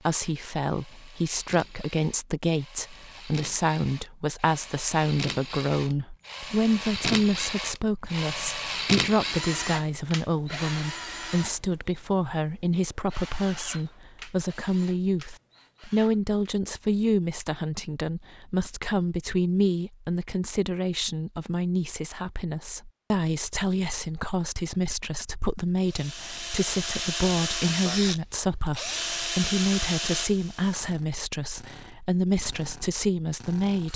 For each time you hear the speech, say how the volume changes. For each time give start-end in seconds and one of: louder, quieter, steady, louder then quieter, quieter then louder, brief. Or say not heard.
0.1-33.9 steady.